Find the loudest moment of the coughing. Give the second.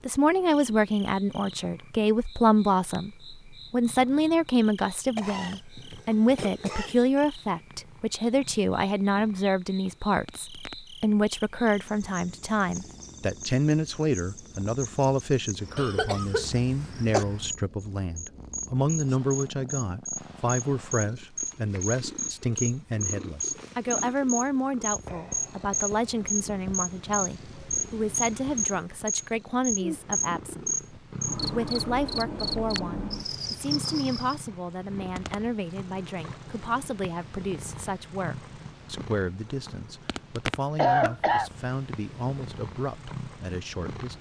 41 s.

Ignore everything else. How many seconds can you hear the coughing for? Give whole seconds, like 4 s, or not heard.
4 s.